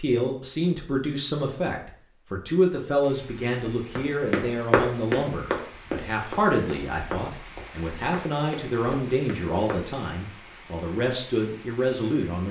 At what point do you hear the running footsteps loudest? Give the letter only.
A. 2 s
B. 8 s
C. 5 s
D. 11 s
C.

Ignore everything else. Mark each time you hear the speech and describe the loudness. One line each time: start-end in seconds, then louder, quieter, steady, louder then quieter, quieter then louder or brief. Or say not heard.
0.0-12.4 steady.